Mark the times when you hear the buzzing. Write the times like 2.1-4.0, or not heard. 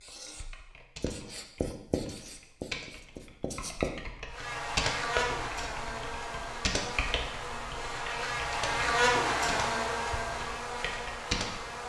4.2-11.8.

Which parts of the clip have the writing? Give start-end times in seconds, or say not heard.
0.0-3.9.